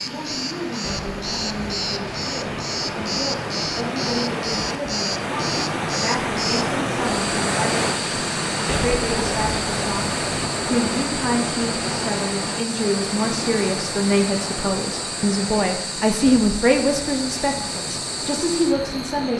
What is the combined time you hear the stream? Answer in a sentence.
You can hear the stream for 19 seconds altogether.